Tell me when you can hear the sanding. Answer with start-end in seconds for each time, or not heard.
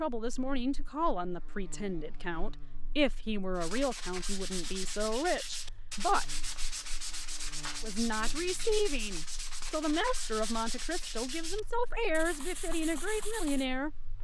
3.5-13.7.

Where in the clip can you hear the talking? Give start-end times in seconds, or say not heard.
0.0-6.2, 7.8-14.1.